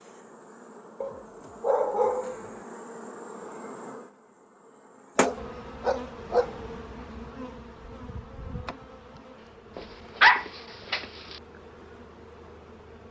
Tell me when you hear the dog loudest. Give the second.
10 s.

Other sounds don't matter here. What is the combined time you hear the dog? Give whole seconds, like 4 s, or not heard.
5 s.